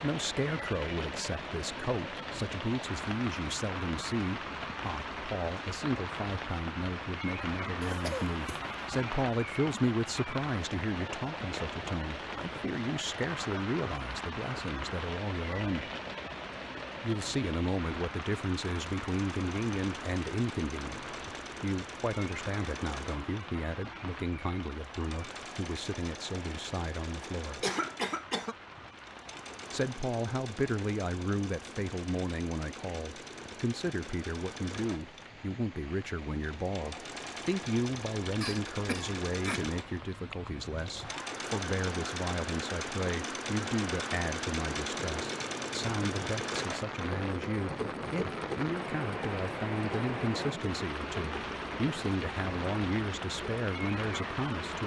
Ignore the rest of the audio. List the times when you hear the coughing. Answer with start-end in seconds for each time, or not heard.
7.8-8.6, 27.6-28.6, 38.4-39.6.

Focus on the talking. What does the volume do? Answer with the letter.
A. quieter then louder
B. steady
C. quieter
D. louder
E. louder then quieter
B.